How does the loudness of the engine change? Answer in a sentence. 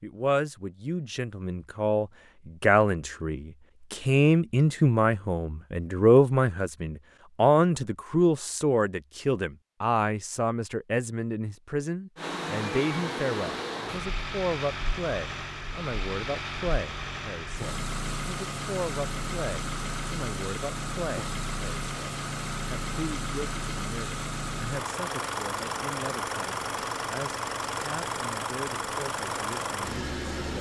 The volume of the engine stays about the same.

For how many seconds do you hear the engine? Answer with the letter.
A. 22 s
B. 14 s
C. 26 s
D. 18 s
D.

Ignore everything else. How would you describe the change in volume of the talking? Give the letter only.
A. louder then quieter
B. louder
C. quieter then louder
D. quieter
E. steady
D.